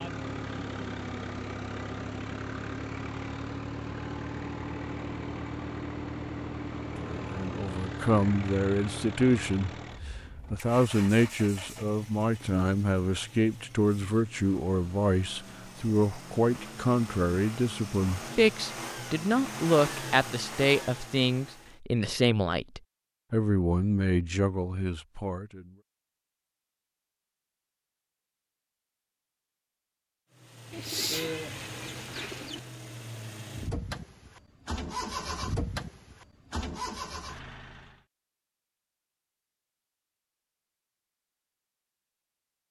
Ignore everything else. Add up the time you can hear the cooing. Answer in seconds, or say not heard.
2 s.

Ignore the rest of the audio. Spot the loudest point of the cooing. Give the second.
31 s.